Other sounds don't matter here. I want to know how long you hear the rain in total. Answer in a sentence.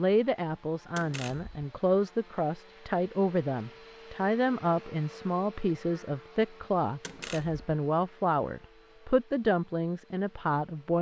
The rain can't be heard in this clip.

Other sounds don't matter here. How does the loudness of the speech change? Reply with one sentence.
The loudness of the speech stays about the same.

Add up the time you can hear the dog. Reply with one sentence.
The dog can't be heard in this clip.